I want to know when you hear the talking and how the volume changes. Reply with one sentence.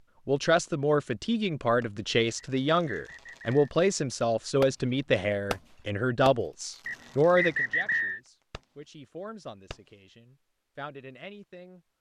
The talking can be heard from 0.2 to 11.8 s, getting quieter.